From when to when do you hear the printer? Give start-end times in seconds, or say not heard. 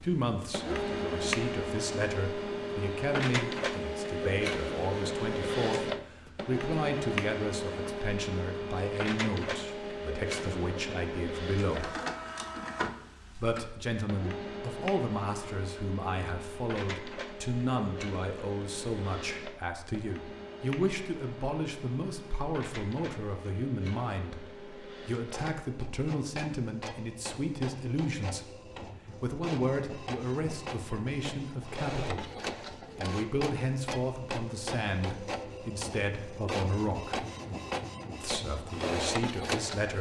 0.0-39.9.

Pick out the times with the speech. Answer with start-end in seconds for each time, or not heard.
0.0-11.9, 13.3-28.5, 29.2-37.2, 38.2-39.9.